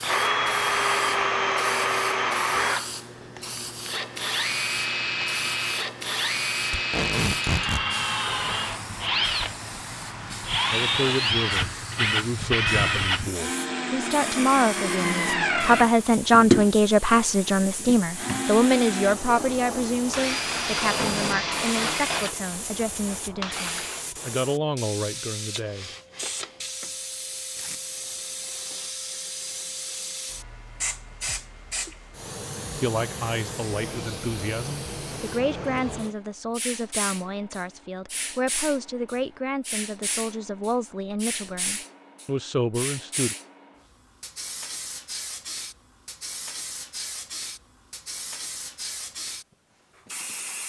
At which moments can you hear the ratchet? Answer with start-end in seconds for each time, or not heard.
not heard.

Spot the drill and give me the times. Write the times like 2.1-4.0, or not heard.
0.0-24.1.